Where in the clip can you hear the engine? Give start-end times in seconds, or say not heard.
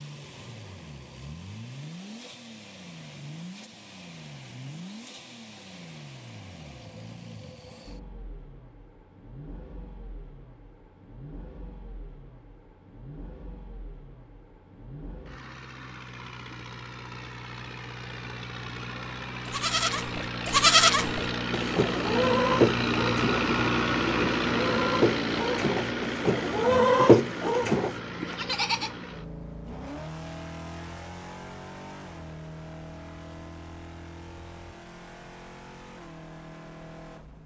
0.0-37.4.